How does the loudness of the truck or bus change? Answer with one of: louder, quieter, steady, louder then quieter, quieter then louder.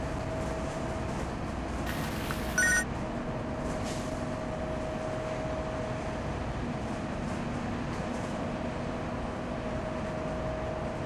steady.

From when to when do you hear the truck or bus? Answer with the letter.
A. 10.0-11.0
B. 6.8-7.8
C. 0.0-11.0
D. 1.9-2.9
C.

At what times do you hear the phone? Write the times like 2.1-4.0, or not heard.
1.9-2.9.